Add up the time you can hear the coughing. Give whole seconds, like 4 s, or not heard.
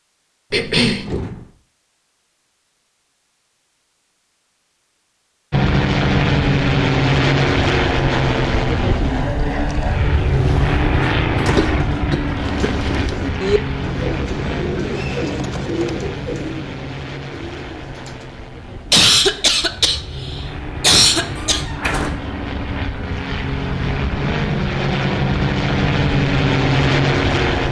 5 s.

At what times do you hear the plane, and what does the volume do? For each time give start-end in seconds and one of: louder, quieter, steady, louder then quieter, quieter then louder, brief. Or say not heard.
5.5-27.6 quieter then louder.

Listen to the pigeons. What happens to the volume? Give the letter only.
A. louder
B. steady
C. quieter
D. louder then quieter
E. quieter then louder
C.